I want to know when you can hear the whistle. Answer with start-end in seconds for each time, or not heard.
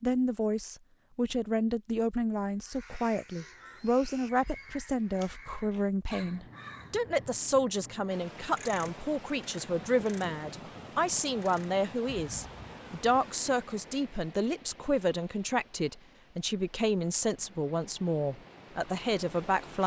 not heard.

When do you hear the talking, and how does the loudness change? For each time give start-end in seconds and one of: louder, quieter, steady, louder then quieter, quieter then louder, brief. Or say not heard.
0.0-19.8 steady.